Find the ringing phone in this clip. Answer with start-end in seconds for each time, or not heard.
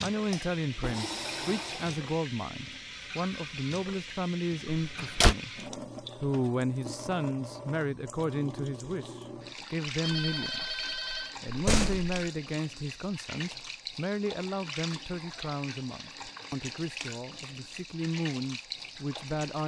10.0-11.3.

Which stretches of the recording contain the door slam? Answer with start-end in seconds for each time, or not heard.
4.7-5.3, 11.4-12.2.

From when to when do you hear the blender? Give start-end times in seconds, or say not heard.
0.1-2.0.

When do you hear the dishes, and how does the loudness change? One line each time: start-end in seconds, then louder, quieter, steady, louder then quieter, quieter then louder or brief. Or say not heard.
not heard.